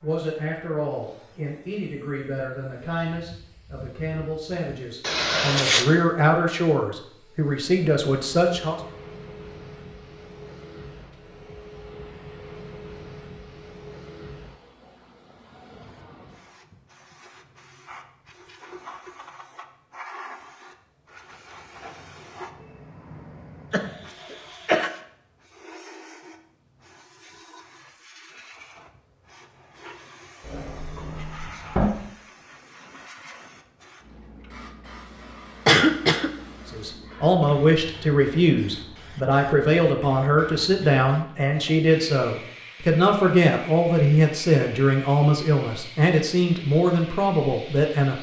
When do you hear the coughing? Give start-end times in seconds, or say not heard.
5.0-5.8, 23.7-24.9, 35.6-36.3.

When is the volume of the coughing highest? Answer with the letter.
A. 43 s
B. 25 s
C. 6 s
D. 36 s
D.